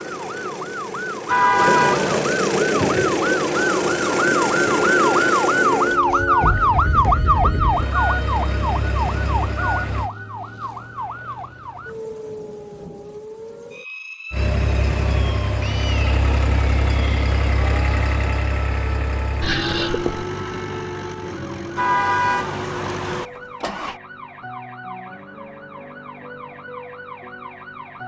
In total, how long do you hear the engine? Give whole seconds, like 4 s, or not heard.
20 s.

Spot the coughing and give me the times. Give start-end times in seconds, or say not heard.
19.4-20.2.